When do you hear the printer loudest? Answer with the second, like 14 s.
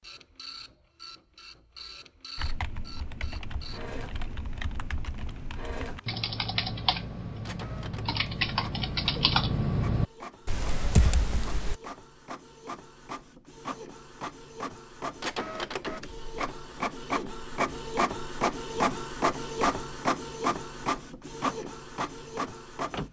19 s.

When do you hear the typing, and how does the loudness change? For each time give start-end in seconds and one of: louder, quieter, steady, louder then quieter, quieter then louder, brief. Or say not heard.
2.4-11.8 louder.